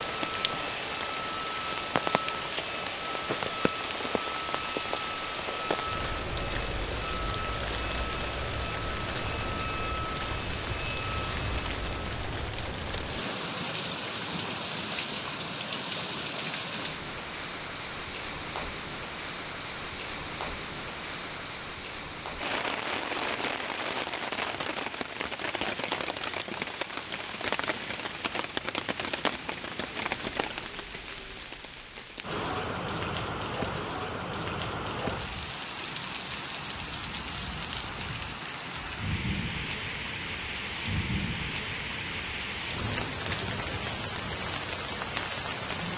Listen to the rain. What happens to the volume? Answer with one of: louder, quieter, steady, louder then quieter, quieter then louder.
steady.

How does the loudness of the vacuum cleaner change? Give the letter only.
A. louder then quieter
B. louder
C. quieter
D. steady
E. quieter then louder
D.